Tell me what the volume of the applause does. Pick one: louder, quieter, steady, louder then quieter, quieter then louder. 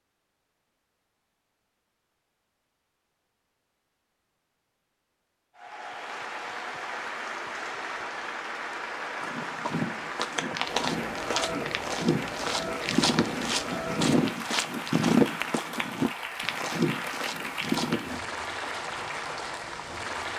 steady.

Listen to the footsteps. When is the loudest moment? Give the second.
15 s.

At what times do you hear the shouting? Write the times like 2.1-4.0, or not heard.
not heard.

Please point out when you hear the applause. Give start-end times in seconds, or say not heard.
5.5-20.3.